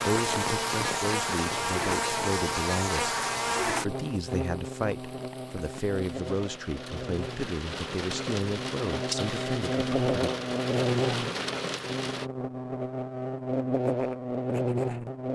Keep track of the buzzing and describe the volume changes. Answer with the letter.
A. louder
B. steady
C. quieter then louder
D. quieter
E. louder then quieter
C.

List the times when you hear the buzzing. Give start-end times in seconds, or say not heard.
0.0-15.2.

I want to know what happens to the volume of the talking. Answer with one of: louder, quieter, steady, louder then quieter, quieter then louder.
steady.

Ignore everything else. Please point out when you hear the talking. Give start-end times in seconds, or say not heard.
0.1-10.3.